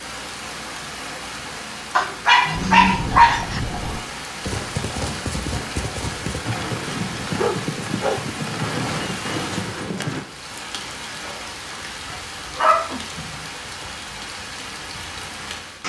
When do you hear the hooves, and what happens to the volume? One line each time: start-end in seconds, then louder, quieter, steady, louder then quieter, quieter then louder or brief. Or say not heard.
2.5-10.2 steady.